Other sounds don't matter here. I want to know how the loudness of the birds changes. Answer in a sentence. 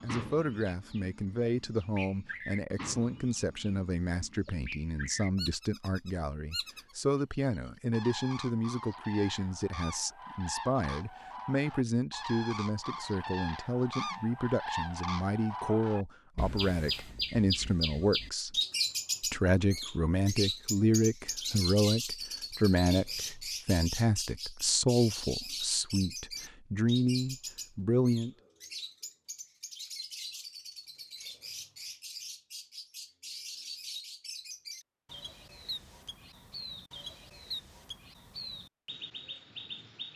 The loudness of the birds goes up, then down.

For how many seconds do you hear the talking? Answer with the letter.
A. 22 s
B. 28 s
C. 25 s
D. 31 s
B.